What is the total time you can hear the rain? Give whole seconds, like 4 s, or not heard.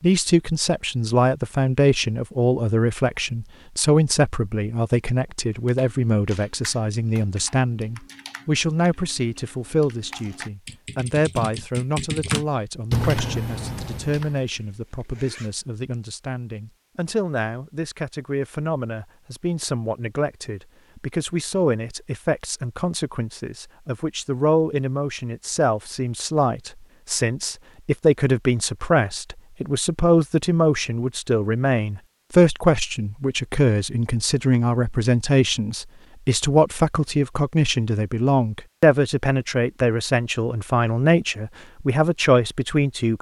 not heard.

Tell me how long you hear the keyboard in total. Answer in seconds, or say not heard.
9 s.